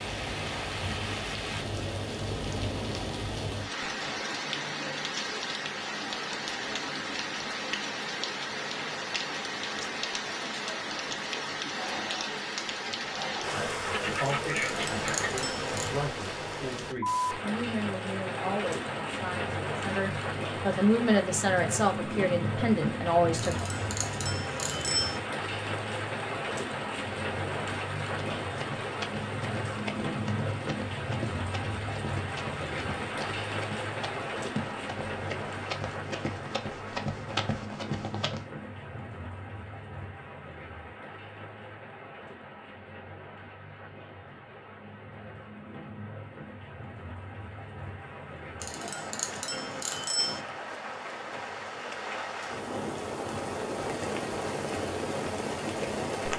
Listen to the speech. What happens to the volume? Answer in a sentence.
The volume of the speech goes up.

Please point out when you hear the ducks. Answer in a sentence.
You can hear the ducks from 13.8 to 15.4 s.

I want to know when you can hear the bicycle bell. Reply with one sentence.
The bicycle bell can be heard from 14.6 to 15.9 s, from 23.4 to 25.2 s and from 48.6 to 50.4 s.